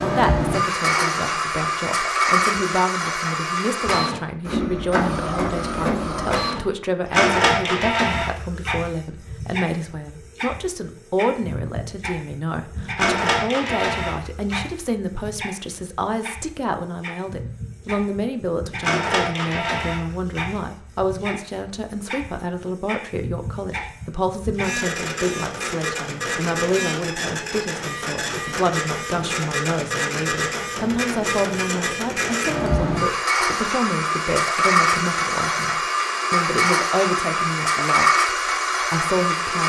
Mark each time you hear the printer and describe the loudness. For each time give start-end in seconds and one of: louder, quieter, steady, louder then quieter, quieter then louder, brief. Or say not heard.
0.0-39.6 quieter then louder.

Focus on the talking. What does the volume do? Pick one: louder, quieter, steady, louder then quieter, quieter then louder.
steady.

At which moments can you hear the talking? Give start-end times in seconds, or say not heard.
0.0-39.6.